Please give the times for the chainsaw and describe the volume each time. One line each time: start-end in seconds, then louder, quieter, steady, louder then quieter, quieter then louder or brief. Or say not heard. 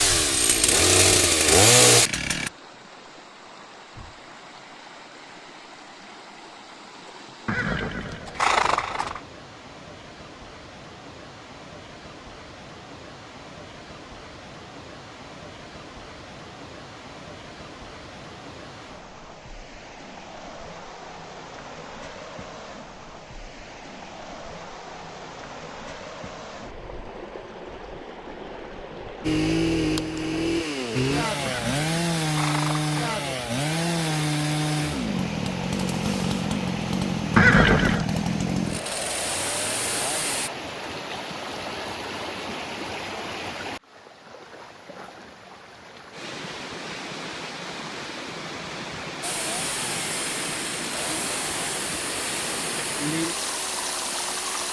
0.0-2.5 brief
29.2-40.5 steady
49.2-54.6 steady.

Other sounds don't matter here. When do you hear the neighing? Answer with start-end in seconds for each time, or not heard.
7.5-9.2, 31.4-33.0, 37.4-38.1.